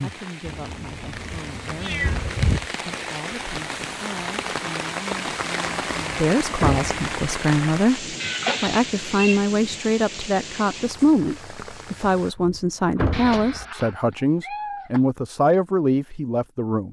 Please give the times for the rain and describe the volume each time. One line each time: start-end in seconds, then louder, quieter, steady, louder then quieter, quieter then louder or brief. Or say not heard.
0.0-12.3 louder then quieter.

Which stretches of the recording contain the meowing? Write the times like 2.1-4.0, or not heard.
0.5-2.2, 8.2-9.4, 13.1-15.0.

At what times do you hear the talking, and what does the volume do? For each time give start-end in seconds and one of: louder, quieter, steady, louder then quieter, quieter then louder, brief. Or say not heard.
0.0-16.8 louder.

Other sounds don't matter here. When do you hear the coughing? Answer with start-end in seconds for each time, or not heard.
not heard.